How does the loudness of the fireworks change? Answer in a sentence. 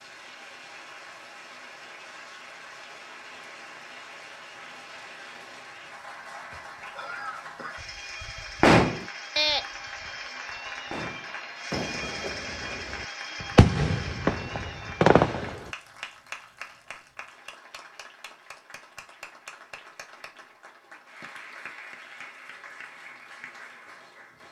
The volume of the fireworks goes down, then up.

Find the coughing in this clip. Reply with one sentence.
The coughing can be heard from 6.5 to 7.8 s.